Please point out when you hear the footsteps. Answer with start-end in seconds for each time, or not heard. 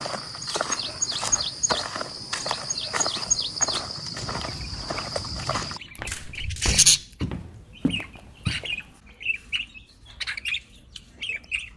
0.0-8.8.